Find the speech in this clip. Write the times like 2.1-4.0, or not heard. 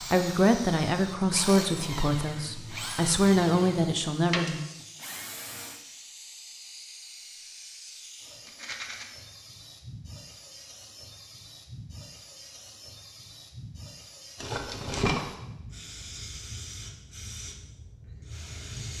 0.1-4.6.